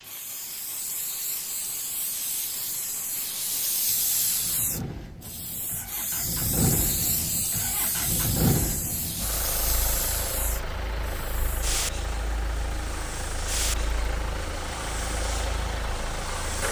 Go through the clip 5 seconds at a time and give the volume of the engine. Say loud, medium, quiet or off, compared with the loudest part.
quiet, loud, medium, loud.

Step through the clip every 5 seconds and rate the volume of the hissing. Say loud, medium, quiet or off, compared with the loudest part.
loud, loud, loud, medium.